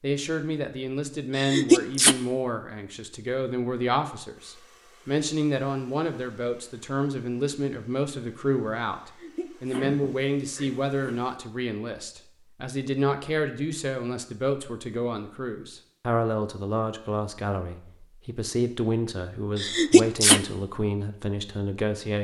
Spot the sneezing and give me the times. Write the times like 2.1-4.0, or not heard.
1.4-2.1, 9.0-11.2, 19.6-20.4.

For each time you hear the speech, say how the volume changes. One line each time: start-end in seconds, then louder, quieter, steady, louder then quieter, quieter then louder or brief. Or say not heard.
0.0-22.1 steady.